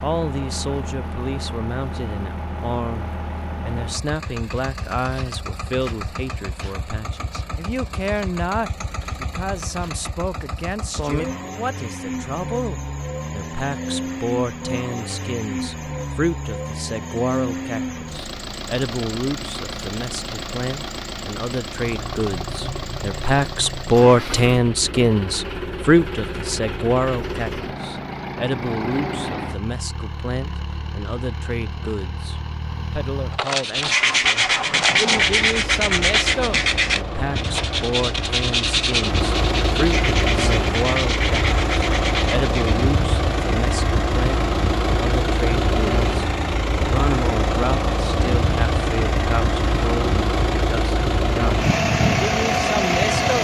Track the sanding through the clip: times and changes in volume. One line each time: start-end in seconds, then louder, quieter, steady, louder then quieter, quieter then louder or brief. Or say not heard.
33.5-42.9 quieter.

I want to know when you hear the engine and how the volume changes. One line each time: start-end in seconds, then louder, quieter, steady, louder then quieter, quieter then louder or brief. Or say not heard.
0.0-53.3 louder.